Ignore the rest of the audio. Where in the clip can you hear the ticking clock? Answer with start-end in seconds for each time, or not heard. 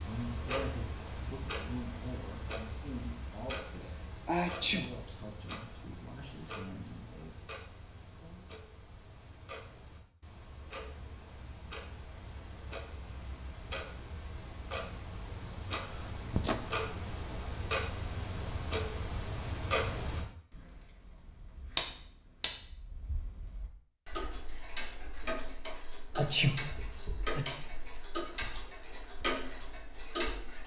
0.0-30.6.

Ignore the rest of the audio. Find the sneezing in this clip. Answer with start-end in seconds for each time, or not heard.
3.9-4.9, 15.6-16.6, 26.1-27.4.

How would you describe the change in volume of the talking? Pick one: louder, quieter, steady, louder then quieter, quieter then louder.
quieter.